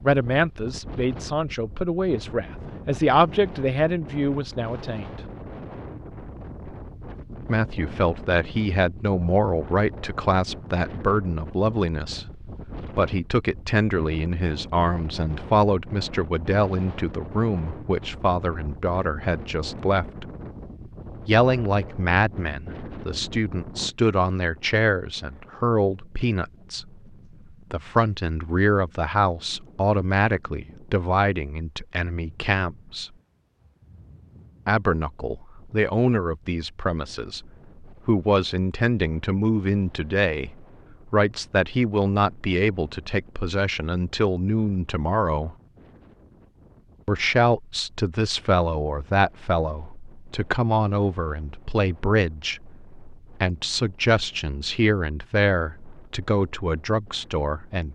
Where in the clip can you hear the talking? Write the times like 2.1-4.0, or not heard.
0.0-5.2, 7.5-20.3, 21.2-26.9, 27.7-33.1, 34.6-45.5, 47.0-57.9.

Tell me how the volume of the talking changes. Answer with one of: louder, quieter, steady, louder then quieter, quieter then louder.
steady.